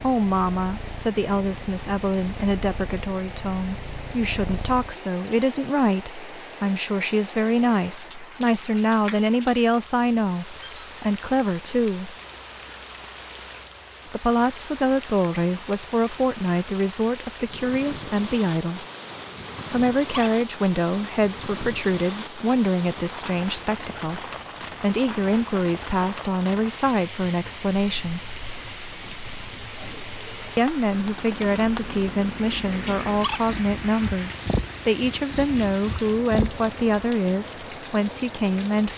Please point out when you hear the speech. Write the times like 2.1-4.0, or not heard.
0.0-12.2, 14.1-18.9, 19.7-28.3, 30.6-38.9.